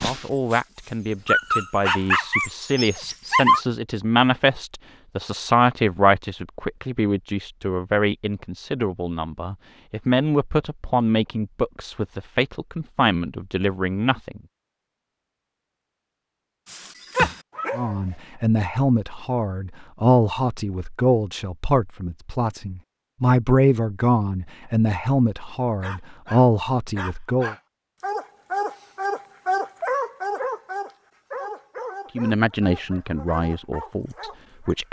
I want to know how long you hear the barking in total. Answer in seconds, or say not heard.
14 s.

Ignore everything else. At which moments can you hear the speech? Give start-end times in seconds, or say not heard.
0.0-14.4, 17.8-27.6, 32.1-34.8.